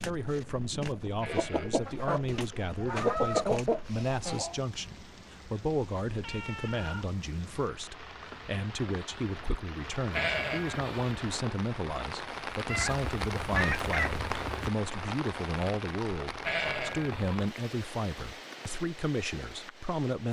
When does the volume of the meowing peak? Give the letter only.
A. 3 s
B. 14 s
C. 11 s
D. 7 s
B.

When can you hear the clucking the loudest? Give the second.
3 s.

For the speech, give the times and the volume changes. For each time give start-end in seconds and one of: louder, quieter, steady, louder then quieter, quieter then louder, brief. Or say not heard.
0.0-20.2 steady.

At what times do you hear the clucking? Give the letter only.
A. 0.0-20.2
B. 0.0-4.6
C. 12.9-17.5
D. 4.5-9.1
B.